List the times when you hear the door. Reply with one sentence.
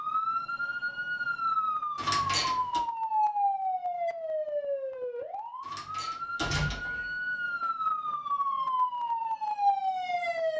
You can hear the door from 1.9 to 2.8 s and from 5.6 to 7.1 s.